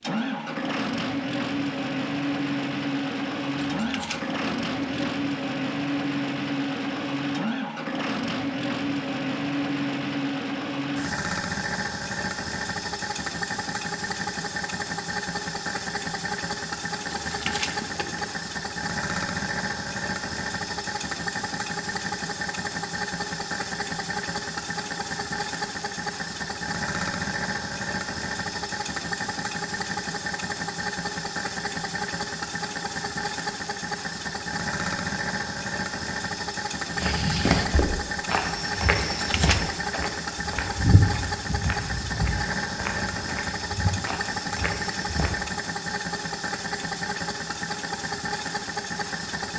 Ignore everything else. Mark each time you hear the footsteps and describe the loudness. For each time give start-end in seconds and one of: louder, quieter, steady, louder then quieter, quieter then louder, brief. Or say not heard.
37.0-45.3 quieter.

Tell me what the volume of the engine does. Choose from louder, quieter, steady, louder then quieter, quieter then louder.
steady.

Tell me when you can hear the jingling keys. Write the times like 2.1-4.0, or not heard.
3.6-5.1, 17.1-18.3, 39.0-39.6.